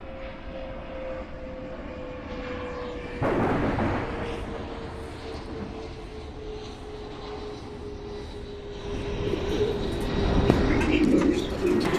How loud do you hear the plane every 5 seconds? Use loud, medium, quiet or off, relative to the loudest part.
medium, medium, loud.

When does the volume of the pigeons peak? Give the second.
11 s.